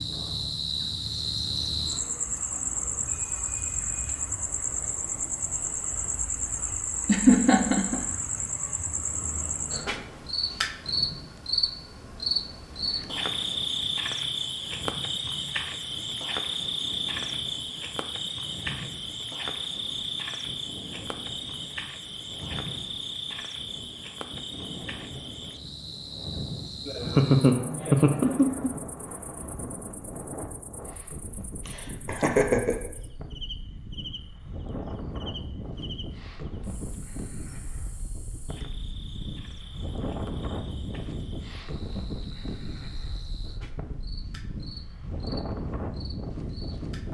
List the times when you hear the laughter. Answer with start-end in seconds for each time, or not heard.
7.0-8.1, 26.9-28.7, 31.6-32.8.